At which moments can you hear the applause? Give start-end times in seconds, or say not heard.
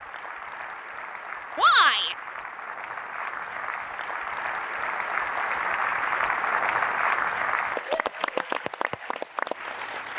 0.0-10.1.